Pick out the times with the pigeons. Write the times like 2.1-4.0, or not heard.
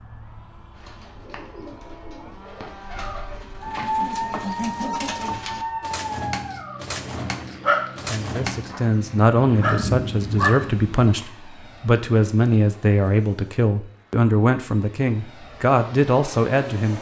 0.7-8.8.